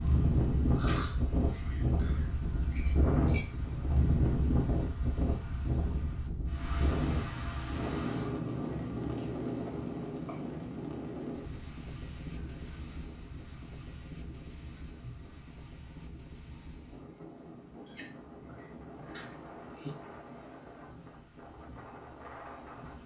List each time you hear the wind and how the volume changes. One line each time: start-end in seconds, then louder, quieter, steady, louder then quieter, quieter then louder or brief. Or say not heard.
0.0-23.0 quieter.